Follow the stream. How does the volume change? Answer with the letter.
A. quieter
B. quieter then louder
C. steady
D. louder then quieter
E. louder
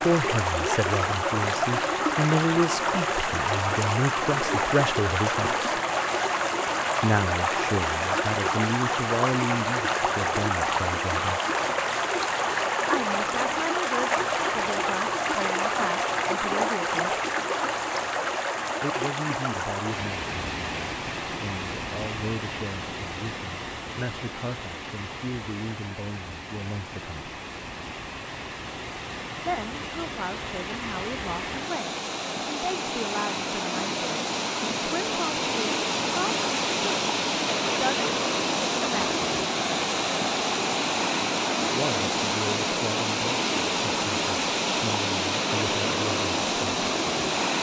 B.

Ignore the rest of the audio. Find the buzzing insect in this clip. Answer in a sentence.
You can't hear the buzzing insect here.